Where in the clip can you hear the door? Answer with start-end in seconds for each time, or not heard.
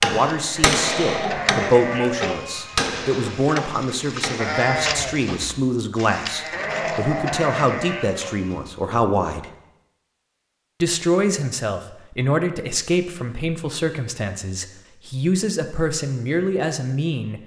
not heard.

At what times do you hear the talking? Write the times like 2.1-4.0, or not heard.
0.0-9.5, 10.8-17.4.